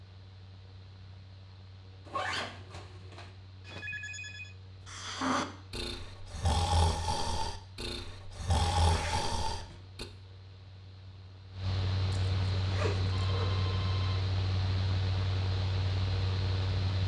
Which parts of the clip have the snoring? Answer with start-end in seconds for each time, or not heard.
4.8-10.1.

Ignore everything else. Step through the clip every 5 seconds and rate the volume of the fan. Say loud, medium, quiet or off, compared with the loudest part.
quiet, quiet, loud, loud.